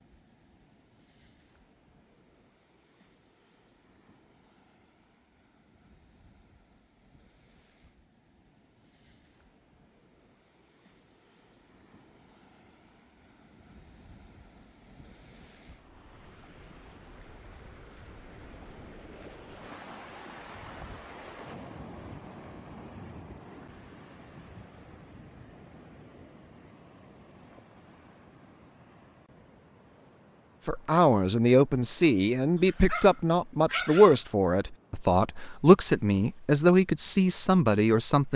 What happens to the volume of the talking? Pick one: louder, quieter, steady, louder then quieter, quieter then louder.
steady.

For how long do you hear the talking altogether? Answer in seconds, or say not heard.
8 s.